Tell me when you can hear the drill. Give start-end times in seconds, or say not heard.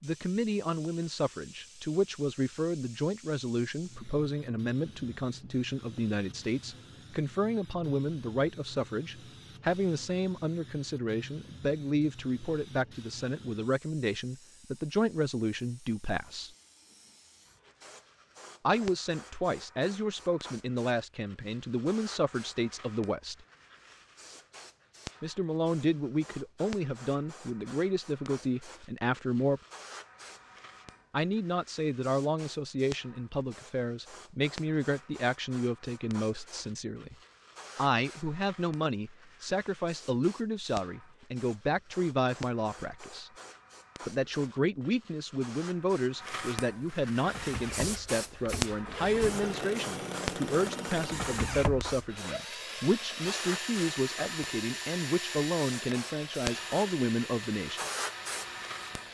47.1-59.1.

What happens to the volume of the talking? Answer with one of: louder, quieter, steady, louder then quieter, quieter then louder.
steady.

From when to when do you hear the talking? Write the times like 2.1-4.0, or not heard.
0.0-16.5, 18.6-23.4, 25.2-29.6, 31.1-37.1, 37.8-43.3, 44.0-57.8.